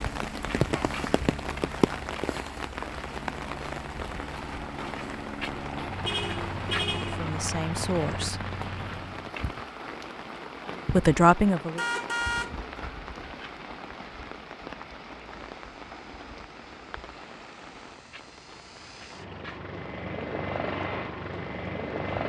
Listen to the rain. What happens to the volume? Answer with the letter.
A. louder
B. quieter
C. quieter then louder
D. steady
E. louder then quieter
B.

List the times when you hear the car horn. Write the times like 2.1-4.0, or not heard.
6.0-7.2, 11.8-12.6.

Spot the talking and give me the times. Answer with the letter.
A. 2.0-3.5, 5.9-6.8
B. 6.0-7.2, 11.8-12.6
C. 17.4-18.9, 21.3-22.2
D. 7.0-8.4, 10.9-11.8
D.